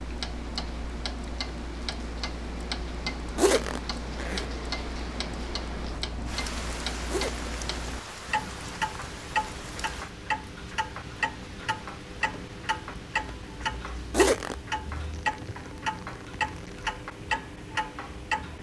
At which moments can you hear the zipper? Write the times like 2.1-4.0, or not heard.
3.4-4.5, 7.0-7.5, 14.1-14.6.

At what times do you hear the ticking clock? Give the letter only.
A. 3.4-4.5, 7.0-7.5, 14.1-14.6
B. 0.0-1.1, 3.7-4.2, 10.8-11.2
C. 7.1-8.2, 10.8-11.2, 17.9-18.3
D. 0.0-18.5
D.